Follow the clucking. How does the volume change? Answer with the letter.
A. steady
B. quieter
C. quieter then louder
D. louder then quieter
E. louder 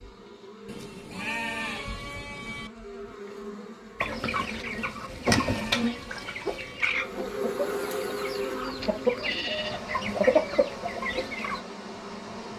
C.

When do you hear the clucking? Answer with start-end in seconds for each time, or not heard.
4.0-11.6.